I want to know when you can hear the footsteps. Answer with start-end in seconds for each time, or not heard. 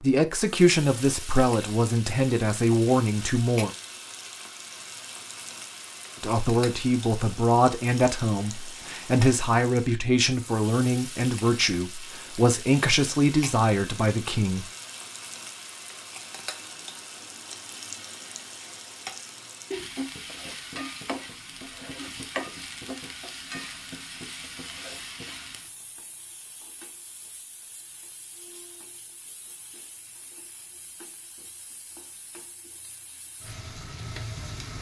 not heard.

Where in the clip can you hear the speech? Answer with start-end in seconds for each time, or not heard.
0.0-3.7, 6.2-14.7.